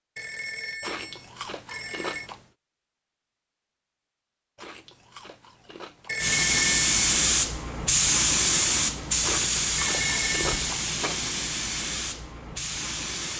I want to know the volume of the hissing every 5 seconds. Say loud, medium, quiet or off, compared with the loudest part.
off, loud, medium.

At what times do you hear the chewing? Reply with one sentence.
The chewing can be heard from 0.8 to 2.5 s, from 4.5 to 6.3 s and from 9.2 to 11.3 s.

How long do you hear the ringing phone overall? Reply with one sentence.
You can hear the ringing phone for 4 seconds altogether.